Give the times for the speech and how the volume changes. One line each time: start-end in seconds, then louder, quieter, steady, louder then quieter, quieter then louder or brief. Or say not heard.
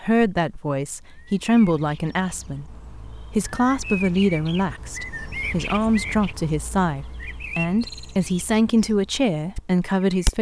0.0-10.3 steady.